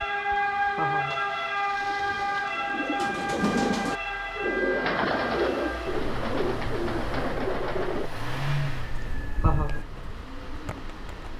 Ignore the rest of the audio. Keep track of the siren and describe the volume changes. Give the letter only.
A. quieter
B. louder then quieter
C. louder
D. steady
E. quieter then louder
A.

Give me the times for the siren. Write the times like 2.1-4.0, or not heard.
0.0-9.8.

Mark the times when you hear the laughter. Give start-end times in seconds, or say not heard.
0.8-1.2, 9.4-9.8.